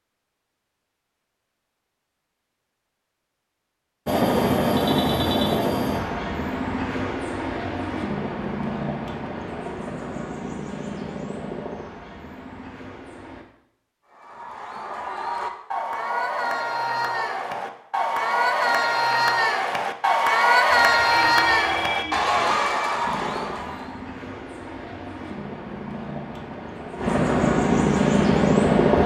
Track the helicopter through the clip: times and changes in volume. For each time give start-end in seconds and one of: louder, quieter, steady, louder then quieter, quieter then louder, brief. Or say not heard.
4.0-13.4 quieter
23.0-29.0 louder.